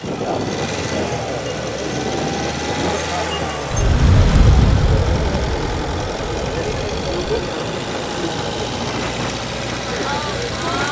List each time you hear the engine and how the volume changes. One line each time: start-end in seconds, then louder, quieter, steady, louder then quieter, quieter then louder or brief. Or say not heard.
0.0-10.8 steady.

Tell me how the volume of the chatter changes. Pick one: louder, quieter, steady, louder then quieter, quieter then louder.
steady.